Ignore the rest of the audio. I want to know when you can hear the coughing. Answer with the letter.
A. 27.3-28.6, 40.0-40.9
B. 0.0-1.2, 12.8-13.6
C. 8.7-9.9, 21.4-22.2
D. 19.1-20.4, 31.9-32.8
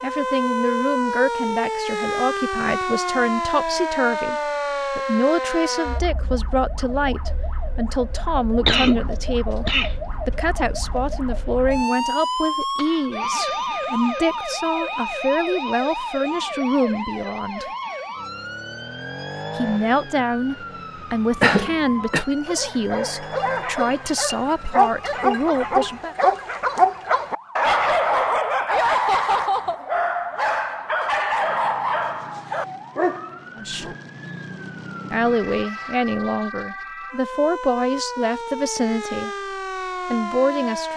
C.